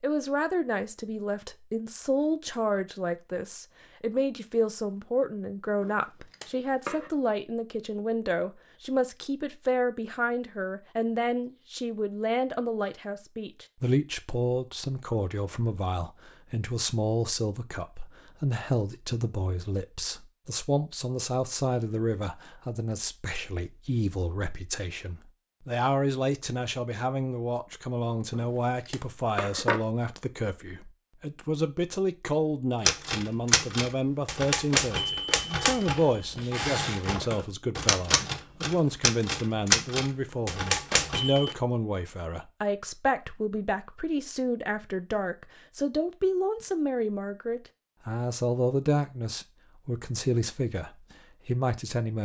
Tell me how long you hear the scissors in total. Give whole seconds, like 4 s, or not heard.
3 s.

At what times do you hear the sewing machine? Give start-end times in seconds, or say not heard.
not heard.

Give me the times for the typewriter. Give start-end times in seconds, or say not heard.
32.9-41.5.